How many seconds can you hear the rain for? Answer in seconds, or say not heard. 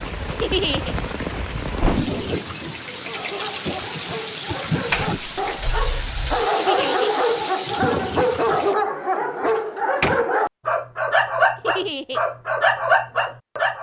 9 s.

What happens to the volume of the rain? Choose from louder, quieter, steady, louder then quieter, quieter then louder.
steady.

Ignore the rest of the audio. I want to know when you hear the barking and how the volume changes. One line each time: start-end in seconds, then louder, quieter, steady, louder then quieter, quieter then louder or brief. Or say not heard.
2.8-13.7 louder.